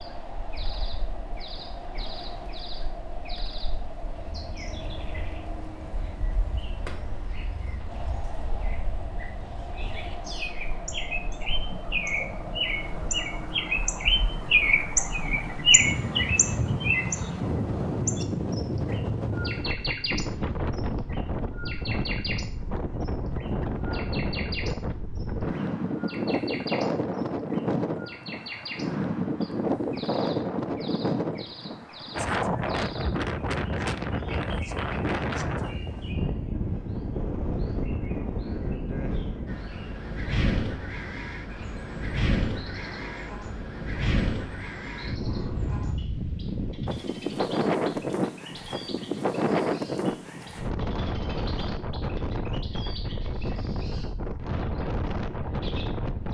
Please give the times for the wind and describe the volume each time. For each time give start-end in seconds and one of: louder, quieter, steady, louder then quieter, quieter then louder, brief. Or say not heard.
0.0-56.2 louder.